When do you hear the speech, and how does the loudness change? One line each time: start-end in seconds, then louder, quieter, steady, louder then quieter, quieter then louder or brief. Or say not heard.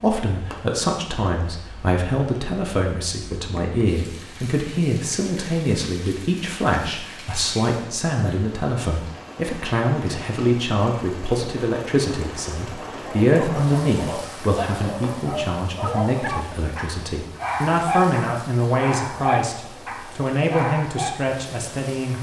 0.0-22.1 steady.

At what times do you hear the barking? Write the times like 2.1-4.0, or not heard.
12.9-21.1.